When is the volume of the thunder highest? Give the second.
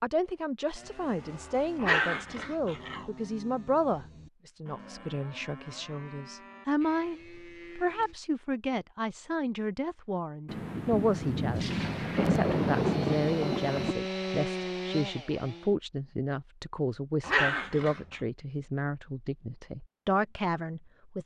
13 s.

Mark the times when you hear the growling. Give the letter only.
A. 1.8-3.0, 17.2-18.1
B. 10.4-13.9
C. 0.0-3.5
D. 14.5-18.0
A.